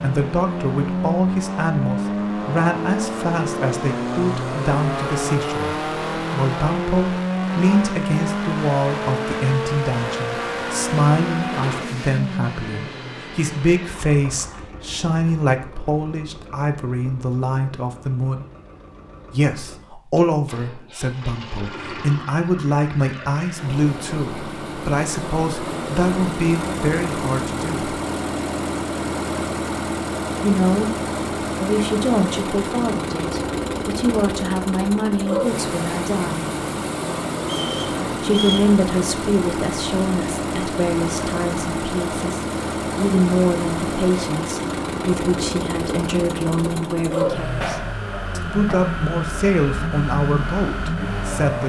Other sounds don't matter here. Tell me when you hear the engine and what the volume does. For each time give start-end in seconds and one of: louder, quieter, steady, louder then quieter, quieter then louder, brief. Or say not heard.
0.0-51.6 quieter then louder.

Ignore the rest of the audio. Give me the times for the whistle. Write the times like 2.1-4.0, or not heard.
37.4-38.7.